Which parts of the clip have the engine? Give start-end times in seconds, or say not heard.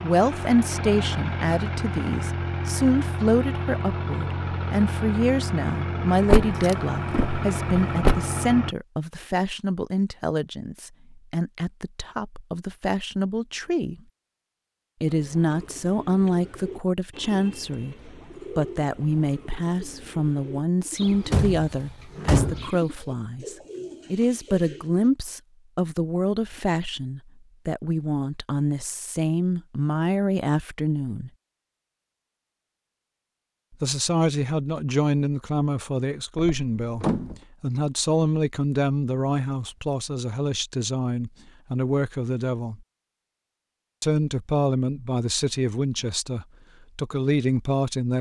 0.0-8.8.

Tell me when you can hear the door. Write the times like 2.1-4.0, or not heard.
6.2-8.2, 21.0-22.7, 36.4-37.4.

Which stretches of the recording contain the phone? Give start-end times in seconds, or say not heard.
not heard.